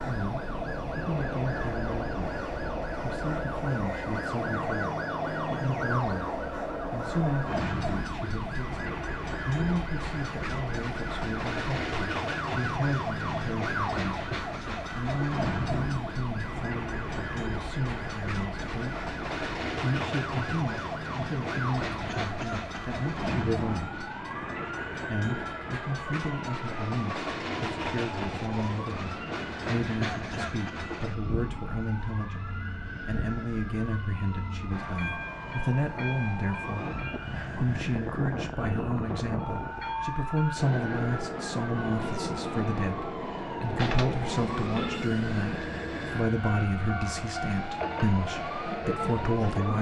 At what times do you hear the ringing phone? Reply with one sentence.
The ringing phone can be heard from 43.8 to 45.0 s.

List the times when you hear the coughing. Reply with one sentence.
The coughing can be heard from 22.1 to 22.9 s and from 30.0 to 30.8 s.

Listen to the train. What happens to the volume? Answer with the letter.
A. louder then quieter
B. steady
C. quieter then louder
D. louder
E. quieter
B.